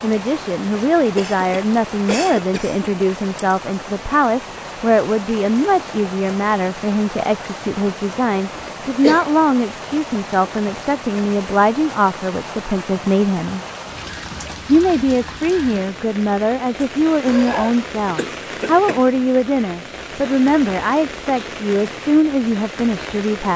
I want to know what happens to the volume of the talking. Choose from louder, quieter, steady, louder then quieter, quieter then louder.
steady.